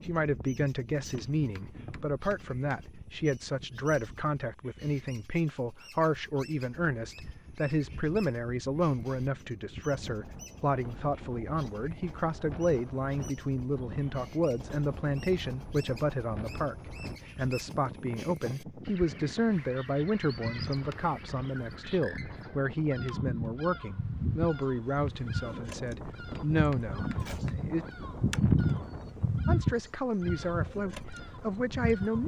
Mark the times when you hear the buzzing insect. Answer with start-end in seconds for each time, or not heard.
19.5-32.2.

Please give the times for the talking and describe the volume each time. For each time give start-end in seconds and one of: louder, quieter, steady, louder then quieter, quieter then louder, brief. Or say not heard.
0.0-16.8 steady
17.4-27.9 steady
29.4-32.2 brief.